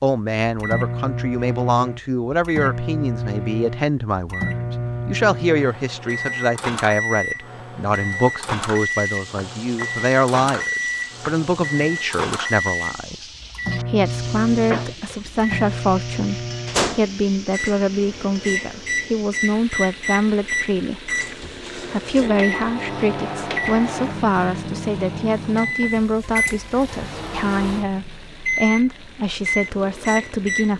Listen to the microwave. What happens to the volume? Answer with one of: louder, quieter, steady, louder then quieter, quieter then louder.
steady.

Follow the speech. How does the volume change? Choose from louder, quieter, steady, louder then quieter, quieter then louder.
steady.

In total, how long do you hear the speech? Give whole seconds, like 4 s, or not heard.
30 s.